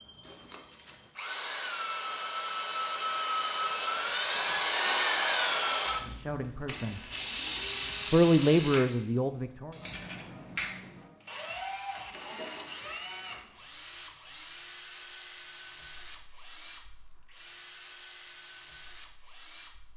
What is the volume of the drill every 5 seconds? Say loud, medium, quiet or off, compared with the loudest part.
loud, loud, medium, quiet.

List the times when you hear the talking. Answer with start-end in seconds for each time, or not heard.
6.0-7.0, 8.1-9.8.